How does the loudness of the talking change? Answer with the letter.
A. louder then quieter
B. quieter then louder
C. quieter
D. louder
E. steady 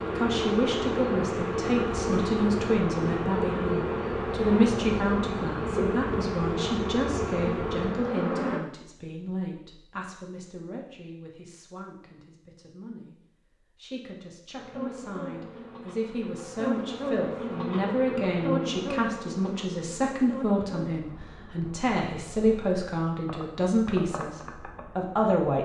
B.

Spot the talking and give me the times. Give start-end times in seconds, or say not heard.
0.1-25.6.